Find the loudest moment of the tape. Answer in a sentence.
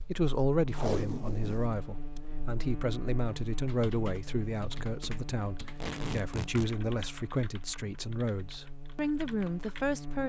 The loudest moment of the tape is at 1 second.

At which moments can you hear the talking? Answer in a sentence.
The talking can be heard from 0.1 to 10.2 s.